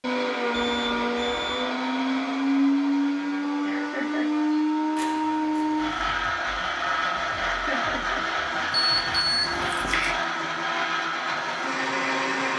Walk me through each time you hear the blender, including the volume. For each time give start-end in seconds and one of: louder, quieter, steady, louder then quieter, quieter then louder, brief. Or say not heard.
0.0-12.5 steady.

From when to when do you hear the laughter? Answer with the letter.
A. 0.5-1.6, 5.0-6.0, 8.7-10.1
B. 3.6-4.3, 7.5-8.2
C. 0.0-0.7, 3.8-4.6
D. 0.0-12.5
B.